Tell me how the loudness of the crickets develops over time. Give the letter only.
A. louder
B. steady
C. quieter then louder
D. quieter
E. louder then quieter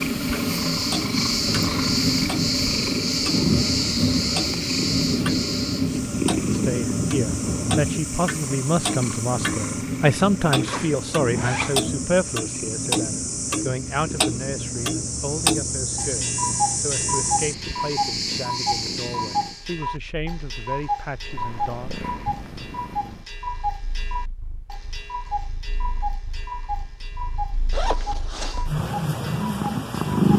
C.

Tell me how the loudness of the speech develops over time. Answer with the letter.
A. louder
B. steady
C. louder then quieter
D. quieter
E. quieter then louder
D.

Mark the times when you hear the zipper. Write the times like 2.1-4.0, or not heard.
10.6-11.8, 27.7-28.7.